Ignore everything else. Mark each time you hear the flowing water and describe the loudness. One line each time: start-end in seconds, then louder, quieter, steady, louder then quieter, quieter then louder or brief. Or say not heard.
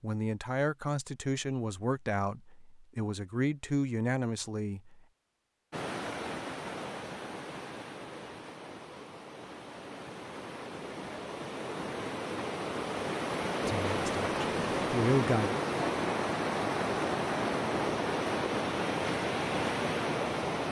5.7-20.6 louder.